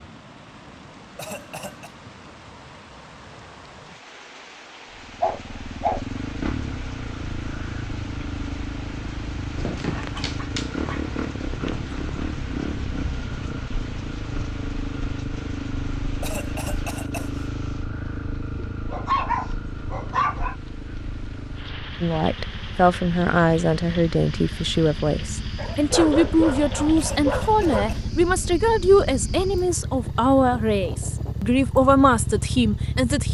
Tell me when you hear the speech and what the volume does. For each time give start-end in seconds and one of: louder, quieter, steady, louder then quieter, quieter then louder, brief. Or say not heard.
22.0-33.2 steady.